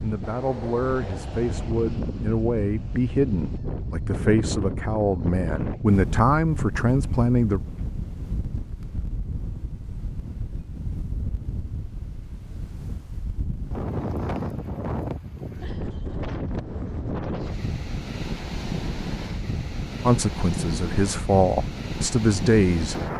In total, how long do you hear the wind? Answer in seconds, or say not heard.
23 s.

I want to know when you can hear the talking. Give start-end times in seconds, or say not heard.
0.0-7.6, 20.0-22.9.